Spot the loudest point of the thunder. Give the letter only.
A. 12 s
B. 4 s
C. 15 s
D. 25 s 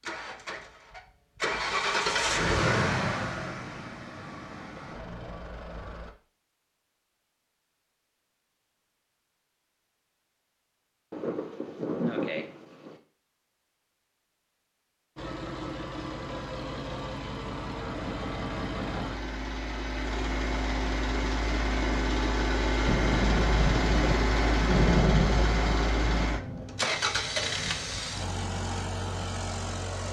D.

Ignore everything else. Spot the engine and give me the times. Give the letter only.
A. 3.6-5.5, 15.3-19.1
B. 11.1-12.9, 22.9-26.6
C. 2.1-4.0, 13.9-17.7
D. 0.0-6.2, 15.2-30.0
D.